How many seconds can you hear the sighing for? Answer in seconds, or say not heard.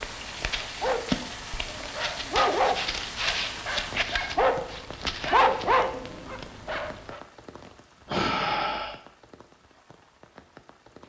2 s.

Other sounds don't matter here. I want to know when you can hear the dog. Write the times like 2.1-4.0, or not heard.
0.0-7.2.